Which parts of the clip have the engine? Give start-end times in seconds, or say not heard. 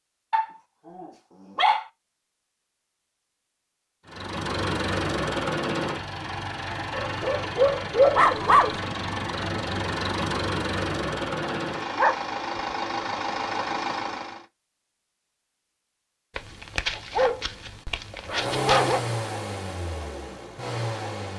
4.0-14.4, 18.2-21.3.